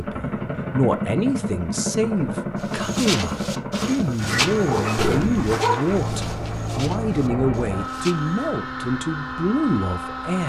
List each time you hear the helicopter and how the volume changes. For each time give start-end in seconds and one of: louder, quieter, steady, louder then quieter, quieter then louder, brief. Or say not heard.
0.0-10.4 steady.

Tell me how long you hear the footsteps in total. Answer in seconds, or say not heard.
6 s.